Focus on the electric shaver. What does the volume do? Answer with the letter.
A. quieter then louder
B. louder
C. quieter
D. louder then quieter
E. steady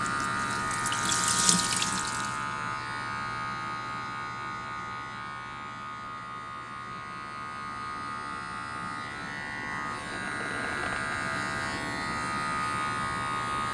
A.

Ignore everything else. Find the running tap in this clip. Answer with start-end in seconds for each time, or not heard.
0.0-2.5.